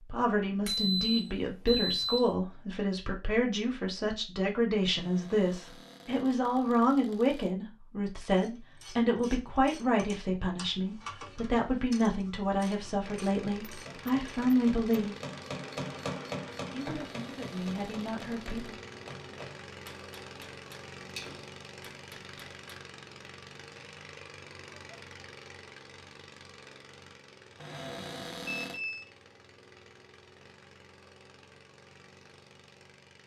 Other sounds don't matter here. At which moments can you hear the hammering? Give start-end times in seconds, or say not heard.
13.8-22.6.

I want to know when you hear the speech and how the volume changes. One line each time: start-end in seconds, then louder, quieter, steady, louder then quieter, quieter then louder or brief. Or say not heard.
0.0-15.2 steady
16.7-18.8 brief.